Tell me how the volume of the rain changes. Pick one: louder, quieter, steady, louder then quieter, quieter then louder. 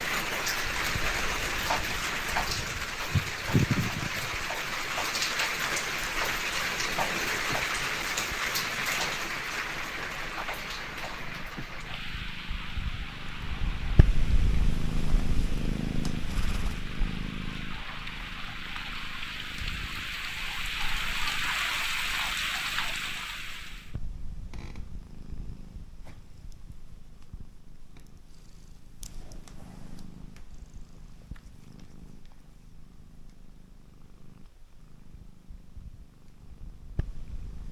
quieter then louder.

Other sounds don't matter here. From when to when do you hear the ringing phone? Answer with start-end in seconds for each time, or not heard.
not heard.